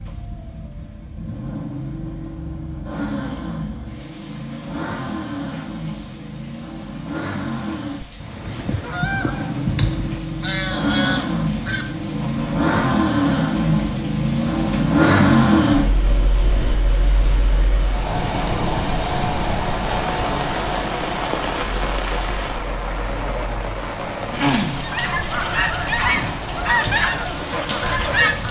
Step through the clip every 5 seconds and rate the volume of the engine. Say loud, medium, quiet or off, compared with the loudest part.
medium, medium, loud, loud, medium, medium.